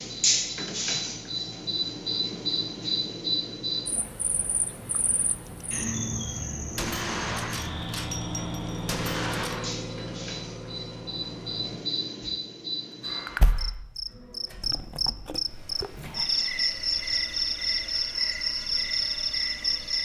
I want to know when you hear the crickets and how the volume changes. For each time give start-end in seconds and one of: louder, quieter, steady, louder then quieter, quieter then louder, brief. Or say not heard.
0.0-20.0 quieter then louder.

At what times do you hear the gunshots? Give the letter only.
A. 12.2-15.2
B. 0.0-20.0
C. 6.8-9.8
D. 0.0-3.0
C.